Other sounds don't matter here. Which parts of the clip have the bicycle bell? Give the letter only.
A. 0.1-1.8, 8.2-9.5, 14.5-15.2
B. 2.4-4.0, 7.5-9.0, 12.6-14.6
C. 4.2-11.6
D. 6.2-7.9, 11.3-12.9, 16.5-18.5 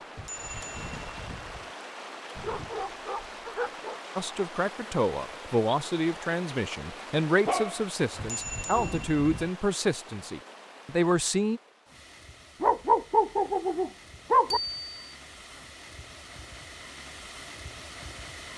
A.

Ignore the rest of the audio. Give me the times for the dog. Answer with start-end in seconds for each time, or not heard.
2.4-4.0, 7.5-9.0, 12.6-14.6.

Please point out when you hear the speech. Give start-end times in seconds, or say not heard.
4.2-11.6.